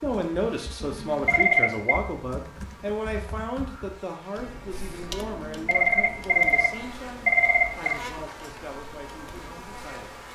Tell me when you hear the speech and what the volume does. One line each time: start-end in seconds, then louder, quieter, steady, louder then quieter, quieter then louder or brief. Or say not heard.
0.0-10.2 quieter.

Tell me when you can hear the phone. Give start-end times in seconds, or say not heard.
0.8-2.0, 5.5-8.0.